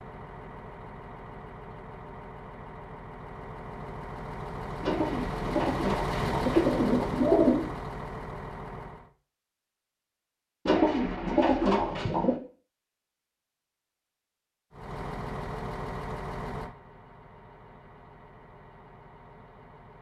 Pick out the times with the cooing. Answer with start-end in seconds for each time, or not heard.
4.8-7.7, 10.7-12.3.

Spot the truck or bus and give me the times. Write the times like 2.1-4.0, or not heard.
0.0-9.1, 14.7-19.9.